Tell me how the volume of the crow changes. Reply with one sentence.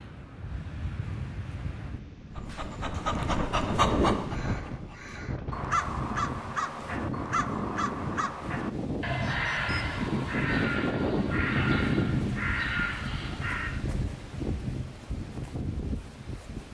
The volume of the crow stays about the same.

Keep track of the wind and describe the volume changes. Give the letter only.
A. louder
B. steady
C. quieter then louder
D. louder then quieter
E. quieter
D.